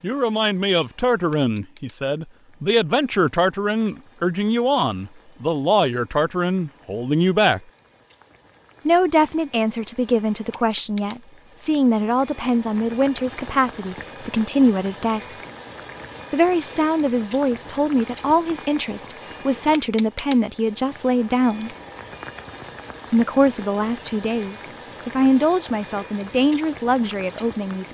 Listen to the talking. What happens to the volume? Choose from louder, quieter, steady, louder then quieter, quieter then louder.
steady.